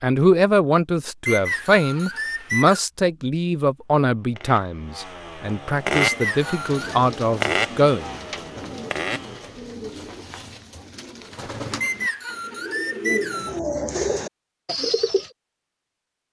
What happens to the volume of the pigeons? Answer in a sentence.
The volume of the pigeons goes up.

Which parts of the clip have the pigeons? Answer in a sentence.
You can hear the pigeons from 5.9 to 15.3 s.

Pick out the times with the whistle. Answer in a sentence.
You can hear the whistle from 1.2 to 2.8 s, from 6.0 to 7.0 s and from 11.8 to 13.6 s.